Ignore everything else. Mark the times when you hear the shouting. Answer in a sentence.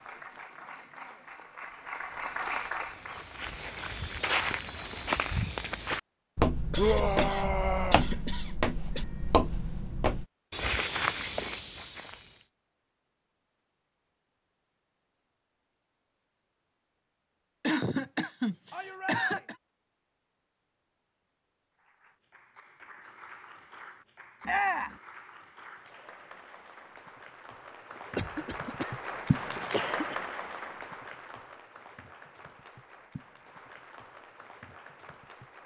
The shouting can be heard from 6.8 to 8.1 s, from 18.7 to 19.4 s and from 24.4 to 25.0 s.